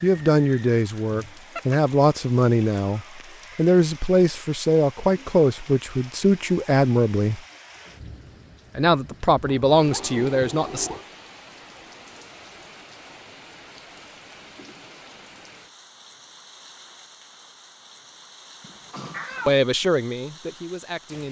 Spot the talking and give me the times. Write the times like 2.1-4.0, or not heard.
0.0-7.4, 8.8-10.9, 19.4-21.2.